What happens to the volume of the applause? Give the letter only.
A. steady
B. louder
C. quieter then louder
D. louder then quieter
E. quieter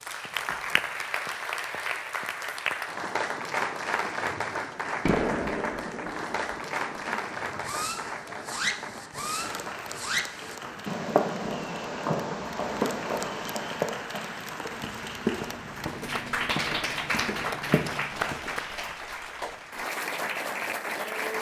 C.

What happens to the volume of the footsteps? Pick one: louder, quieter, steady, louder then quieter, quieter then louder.
louder.